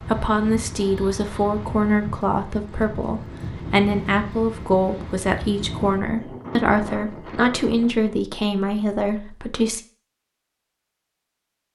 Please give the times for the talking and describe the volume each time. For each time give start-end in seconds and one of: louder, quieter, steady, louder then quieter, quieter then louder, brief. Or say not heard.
0.0-9.8 steady.